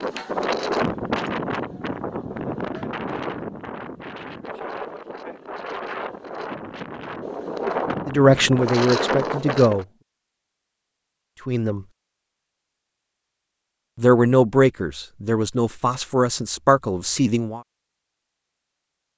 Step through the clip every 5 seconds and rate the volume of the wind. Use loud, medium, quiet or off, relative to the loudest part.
loud, loud, off, off.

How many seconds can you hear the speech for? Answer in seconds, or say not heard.
6 s.